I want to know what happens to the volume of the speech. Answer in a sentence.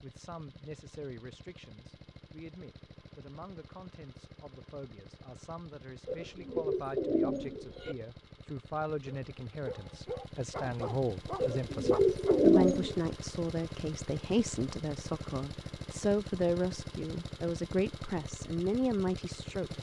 The loudness of the speech goes up.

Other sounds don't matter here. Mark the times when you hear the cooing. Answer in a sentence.
The cooing can be heard from 6.0 to 8.0 s and from 11.4 to 12.9 s.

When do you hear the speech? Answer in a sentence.
You can hear the speech from 0.0 to 19.7 s.